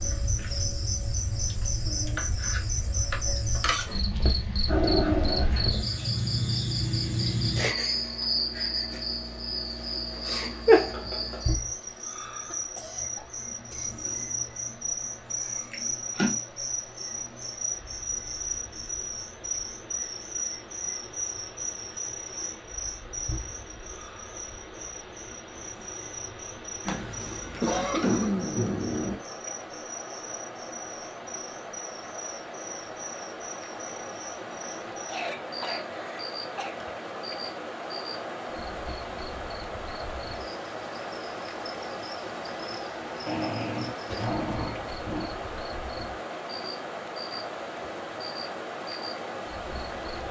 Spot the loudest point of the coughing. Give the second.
28 s.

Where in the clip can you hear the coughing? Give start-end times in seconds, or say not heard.
11.7-14.2, 26.9-28.3, 35.0-36.8.